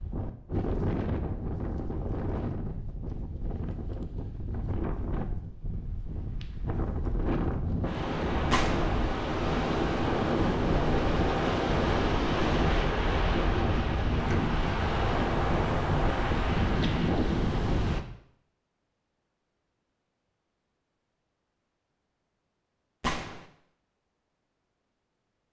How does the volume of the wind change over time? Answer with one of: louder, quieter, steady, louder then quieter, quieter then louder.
louder.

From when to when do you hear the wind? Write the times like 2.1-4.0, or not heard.
0.0-18.0.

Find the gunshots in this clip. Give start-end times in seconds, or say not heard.
8.5-8.9, 23.0-23.4.